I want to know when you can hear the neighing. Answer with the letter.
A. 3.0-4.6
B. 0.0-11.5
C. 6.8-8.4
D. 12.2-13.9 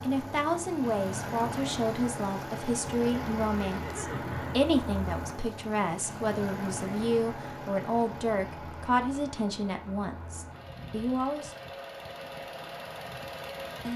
A.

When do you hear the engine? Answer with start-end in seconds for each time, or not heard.
0.0-13.9.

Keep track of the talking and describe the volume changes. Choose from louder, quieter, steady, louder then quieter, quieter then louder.
steady.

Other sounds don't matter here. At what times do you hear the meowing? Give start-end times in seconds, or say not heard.
not heard.